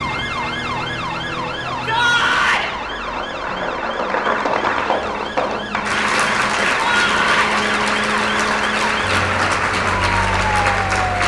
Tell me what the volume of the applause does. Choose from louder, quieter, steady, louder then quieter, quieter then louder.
louder.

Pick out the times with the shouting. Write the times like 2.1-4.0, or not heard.
1.6-2.7, 6.8-7.6.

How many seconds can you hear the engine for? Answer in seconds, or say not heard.
2 s.